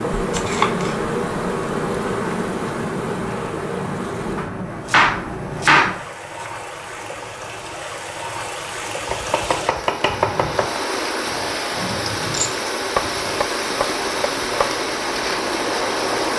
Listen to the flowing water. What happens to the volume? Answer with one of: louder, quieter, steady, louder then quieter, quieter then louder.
louder.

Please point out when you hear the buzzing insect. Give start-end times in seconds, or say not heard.
0.0-4.5, 10.1-16.3.